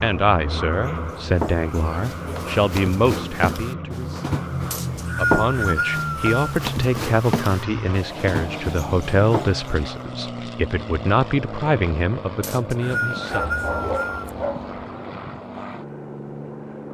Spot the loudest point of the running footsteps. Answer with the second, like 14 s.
5 s.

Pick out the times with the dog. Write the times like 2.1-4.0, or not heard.
13.3-14.8.